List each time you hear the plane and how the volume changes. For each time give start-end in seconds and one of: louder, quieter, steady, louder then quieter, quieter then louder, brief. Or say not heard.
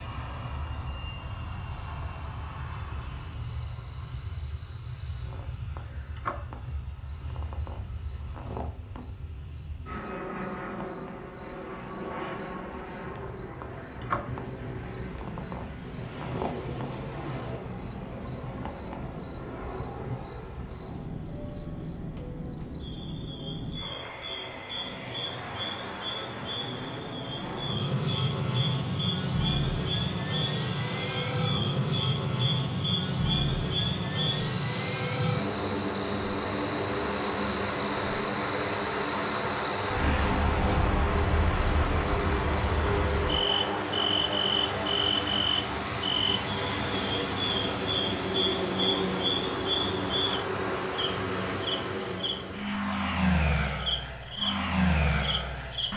0.0-55.9 louder.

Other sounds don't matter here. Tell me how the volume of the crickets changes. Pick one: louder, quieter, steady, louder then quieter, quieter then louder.
louder.